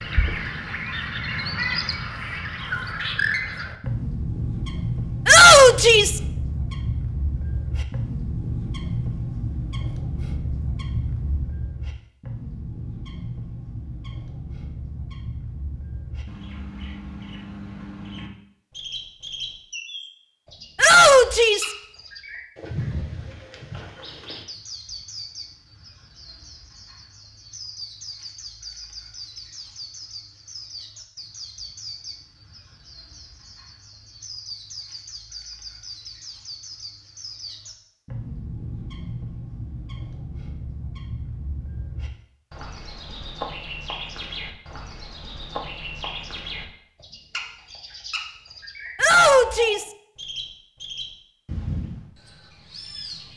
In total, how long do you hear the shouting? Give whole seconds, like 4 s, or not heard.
3 s.